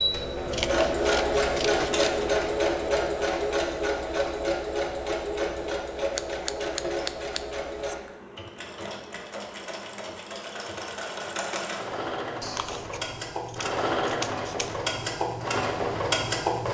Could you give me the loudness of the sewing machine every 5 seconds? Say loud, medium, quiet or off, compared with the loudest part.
loud, medium, medium, loud.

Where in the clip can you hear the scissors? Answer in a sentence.
The scissors can be heard from 0.5 to 2.4 s, from 6.0 to 8.0 s and from 12.4 to 14.8 s.